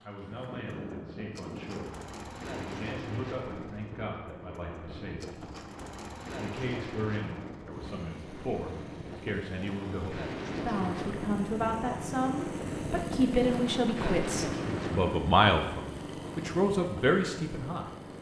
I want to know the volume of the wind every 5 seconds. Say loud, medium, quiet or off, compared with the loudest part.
medium, medium, loud, medium.